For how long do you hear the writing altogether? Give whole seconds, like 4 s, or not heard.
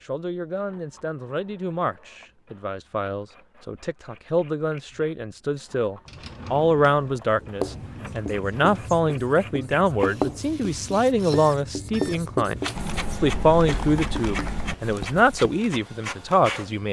8 s.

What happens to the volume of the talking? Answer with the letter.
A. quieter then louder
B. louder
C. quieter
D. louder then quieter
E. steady
B.